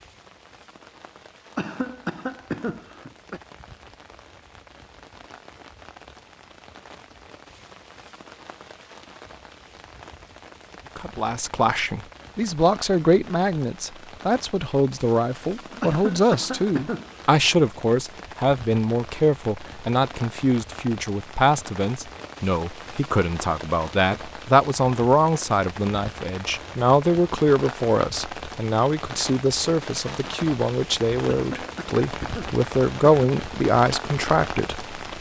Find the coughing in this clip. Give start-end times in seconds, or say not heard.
1.6-3.4, 15.8-17.4, 31.2-33.3.